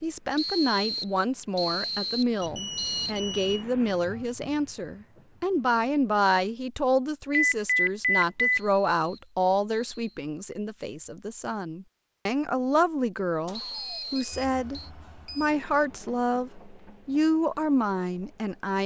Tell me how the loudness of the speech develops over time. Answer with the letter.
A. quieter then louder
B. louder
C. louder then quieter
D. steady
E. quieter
D.